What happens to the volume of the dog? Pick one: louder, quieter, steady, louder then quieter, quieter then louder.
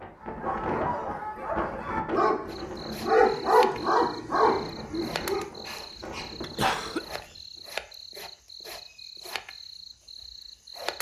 louder then quieter.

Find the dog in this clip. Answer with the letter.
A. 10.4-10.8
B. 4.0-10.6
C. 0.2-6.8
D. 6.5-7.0
C.